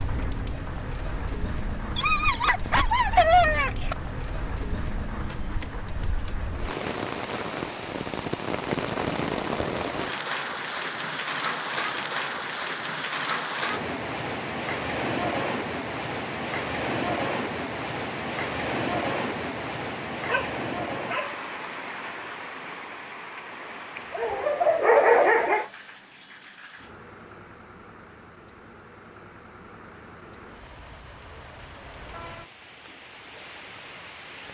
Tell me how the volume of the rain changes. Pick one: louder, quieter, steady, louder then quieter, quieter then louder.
louder then quieter.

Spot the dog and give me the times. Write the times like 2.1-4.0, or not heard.
1.9-4.0, 20.2-21.4, 23.9-25.6.